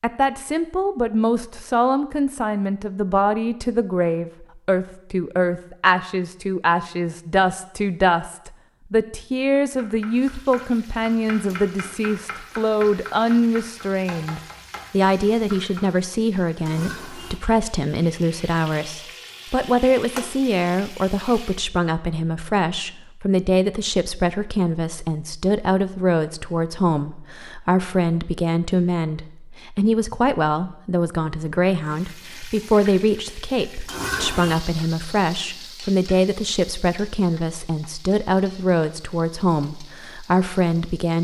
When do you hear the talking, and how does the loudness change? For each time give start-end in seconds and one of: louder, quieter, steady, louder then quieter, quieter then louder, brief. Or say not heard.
0.0-41.1 steady.